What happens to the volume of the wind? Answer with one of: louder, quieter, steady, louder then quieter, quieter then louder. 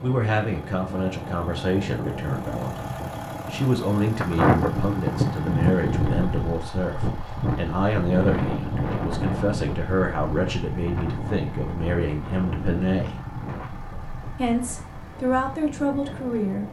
quieter.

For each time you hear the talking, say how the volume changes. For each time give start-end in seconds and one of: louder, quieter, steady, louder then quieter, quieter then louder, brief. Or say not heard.
0.0-13.2 steady
14.3-16.6 brief.